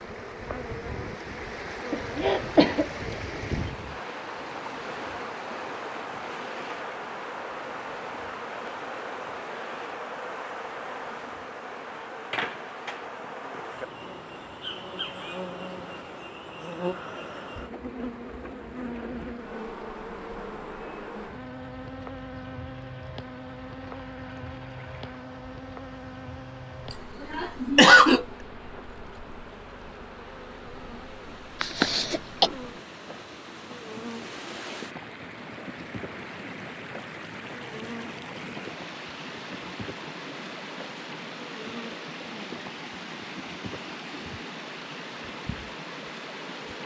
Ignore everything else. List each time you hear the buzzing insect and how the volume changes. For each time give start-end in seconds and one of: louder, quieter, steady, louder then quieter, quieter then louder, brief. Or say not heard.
0.0-46.8 quieter.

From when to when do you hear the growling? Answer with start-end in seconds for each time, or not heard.
not heard.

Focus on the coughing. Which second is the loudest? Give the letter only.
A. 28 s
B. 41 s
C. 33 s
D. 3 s
A.